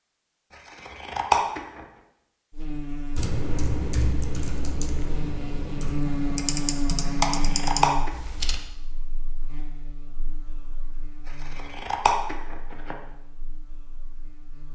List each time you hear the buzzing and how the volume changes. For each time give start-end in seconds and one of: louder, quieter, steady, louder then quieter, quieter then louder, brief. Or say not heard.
2.5-14.6 louder then quieter.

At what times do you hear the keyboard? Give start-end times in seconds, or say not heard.
3.1-8.6.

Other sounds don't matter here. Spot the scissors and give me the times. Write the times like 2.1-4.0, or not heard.
0.7-1.6, 7.2-8.1, 11.2-12.9.